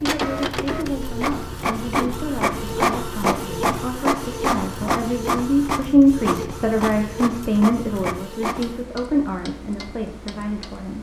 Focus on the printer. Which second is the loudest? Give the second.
3 s.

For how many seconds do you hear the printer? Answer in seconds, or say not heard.
9 s.